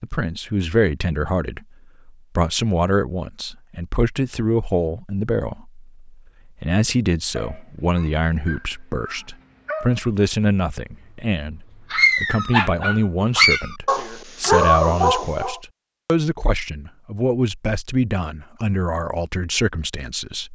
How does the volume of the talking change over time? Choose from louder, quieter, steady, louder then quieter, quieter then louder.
steady.